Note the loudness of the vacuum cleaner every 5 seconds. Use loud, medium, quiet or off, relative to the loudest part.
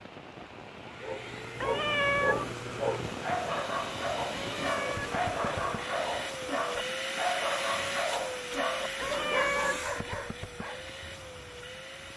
medium, loud, medium.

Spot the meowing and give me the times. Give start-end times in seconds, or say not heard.
1.6-2.5, 4.5-5.2, 8.9-9.8.